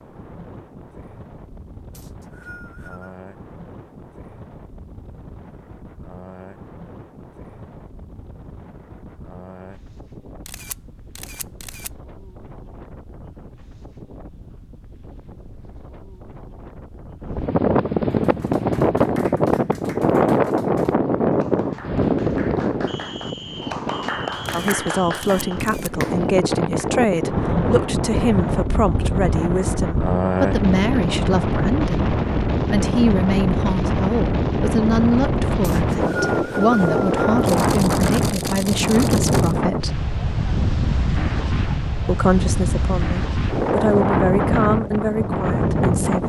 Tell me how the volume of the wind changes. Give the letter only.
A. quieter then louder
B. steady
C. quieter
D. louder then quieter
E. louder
E.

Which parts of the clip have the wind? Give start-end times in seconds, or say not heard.
0.0-46.2.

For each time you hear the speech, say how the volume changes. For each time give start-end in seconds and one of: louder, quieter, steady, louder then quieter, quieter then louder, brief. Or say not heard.
24.5-40.0 steady
42.0-46.2 louder then quieter.